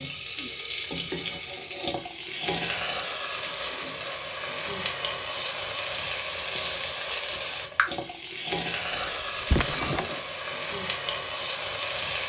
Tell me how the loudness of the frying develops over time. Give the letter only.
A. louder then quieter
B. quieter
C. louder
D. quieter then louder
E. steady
E.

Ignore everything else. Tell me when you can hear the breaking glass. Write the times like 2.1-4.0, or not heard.
8.9-10.2.